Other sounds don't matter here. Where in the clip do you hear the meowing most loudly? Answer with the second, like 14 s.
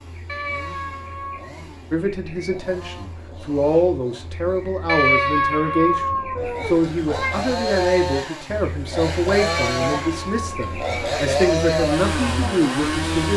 5 s.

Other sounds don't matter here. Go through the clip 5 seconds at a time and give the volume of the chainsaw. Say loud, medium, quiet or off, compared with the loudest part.
quiet, loud, loud.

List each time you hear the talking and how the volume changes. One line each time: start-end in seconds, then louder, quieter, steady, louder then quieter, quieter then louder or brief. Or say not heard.
1.9-13.3 steady.